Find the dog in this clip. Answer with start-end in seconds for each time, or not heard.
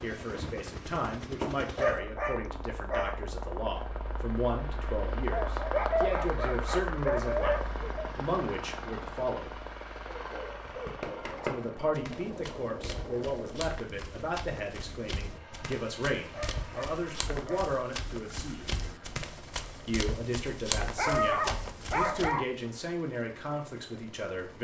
1.8-3.2, 5.3-8.1, 10.1-11.6, 16.3-17.8, 20.4-22.4.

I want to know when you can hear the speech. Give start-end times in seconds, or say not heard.
0.0-7.5, 8.2-9.6, 11.4-18.6, 19.9-24.5.